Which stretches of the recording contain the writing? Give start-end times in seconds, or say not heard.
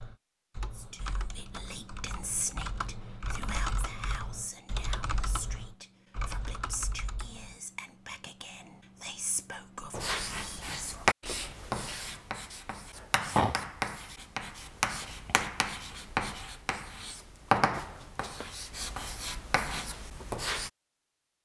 9.9-20.7.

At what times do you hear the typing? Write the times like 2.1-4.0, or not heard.
0.0-7.6.